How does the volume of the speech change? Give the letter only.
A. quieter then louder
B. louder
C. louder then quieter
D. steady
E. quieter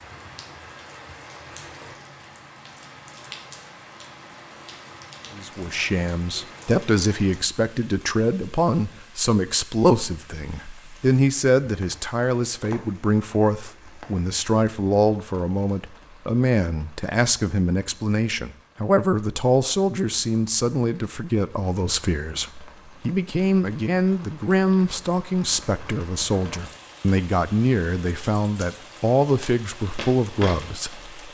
D.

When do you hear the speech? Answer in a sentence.
You can hear the speech from 5.3 to 31.1 s.